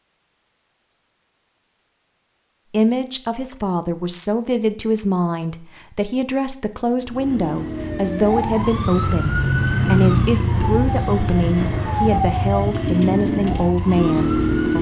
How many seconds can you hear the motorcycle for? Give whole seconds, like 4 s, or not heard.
8 s.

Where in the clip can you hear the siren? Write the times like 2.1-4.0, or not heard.
7.7-14.7.